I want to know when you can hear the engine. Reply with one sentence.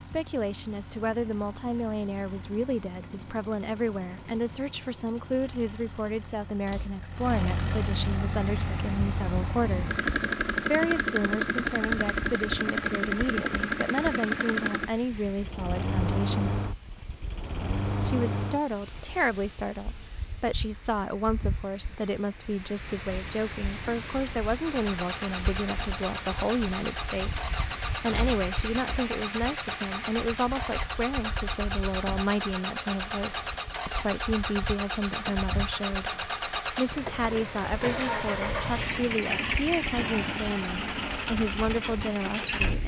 The engine can be heard from 0.0 to 19.2 s and from 24.6 to 42.8 s.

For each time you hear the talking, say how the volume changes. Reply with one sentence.
The talking can be heard from 0.0 to 10.0 s, at a steady volume; from 10.7 to 16.6 s, at a steady volume; and from 18.0 to 42.8 s, at a steady volume.